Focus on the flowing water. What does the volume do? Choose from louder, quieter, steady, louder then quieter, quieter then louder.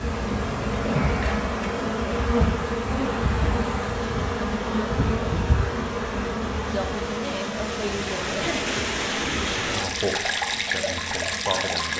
louder.